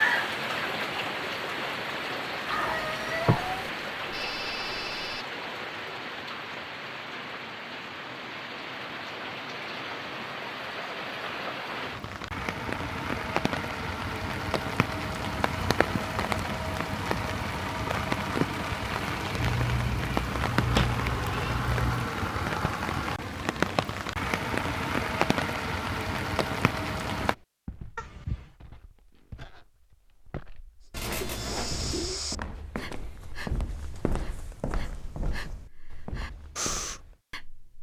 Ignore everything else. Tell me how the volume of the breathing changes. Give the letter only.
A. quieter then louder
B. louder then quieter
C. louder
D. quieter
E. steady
A.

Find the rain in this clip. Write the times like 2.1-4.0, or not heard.
0.0-27.4.